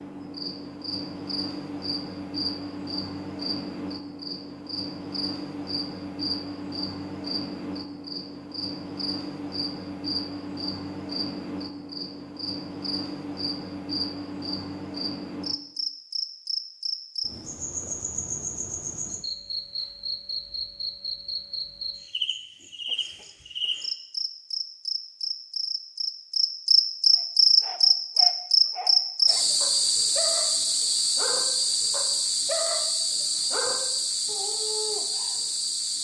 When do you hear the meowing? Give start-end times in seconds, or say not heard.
not heard.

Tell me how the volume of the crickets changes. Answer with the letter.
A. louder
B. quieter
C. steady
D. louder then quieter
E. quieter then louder
A.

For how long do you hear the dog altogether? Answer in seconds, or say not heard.
8 s.